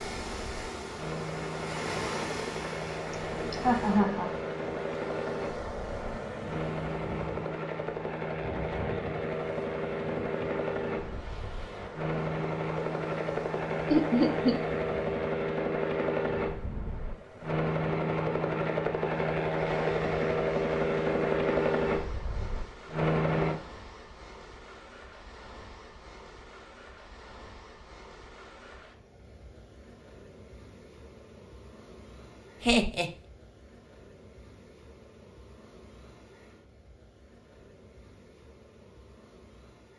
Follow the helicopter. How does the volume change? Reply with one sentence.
The volume of the helicopter goes up.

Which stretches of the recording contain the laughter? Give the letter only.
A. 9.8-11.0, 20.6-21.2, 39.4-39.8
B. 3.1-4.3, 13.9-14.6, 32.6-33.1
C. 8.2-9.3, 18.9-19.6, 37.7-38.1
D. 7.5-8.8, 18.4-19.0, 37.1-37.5
B.